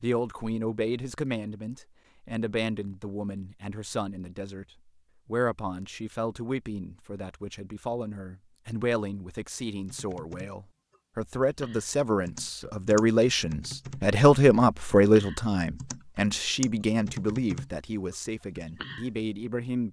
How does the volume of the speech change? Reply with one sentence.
The loudness of the speech goes up, then down.